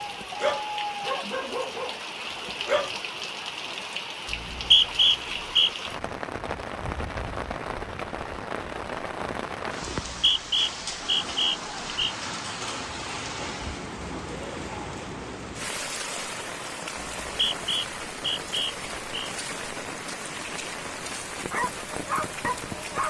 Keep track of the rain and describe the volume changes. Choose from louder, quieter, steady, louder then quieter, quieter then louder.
steady.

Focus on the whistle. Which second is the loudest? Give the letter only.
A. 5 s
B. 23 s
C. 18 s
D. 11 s
A.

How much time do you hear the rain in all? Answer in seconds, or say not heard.
23 s.